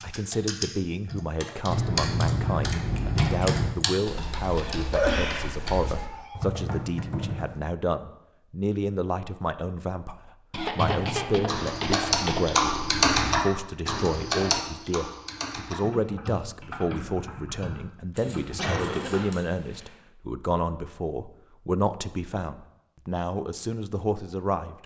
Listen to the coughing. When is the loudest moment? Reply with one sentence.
The loudest moment of the coughing is at 5 seconds.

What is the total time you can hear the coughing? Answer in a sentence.
The coughing can be heard for 5 seconds in total.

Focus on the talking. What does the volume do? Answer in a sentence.
The volume of the talking stays about the same.